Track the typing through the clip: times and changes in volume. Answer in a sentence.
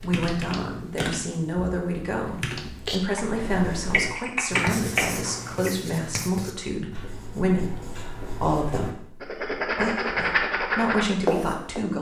The typing can be heard from 0.0 to 5.7 s, getting quieter then louder.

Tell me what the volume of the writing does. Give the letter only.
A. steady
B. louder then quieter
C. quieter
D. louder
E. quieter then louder
E.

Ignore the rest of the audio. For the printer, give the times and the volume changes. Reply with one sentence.
The printer can't be heard in this clip.